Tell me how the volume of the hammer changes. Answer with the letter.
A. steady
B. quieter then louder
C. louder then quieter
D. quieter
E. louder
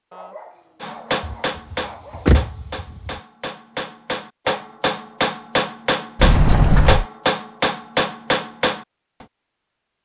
E.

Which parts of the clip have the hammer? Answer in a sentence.
You can hear the hammer from 0.8 to 9.2 s.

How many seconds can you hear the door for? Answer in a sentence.
You can hear the door for 3 seconds altogether.